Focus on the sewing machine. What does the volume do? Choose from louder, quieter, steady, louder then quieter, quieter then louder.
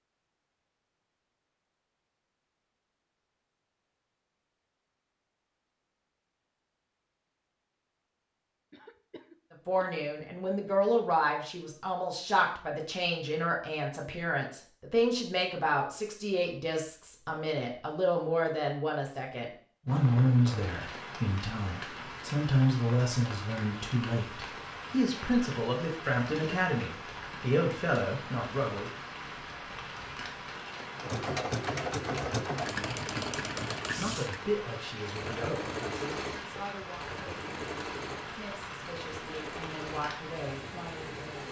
quieter.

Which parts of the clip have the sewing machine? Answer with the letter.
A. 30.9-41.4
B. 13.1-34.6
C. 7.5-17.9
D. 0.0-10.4
A.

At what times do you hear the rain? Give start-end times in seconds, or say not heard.
19.9-41.4.